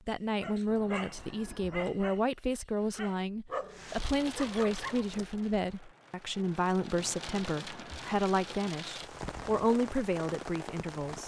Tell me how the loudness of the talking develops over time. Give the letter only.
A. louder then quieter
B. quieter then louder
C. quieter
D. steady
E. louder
D.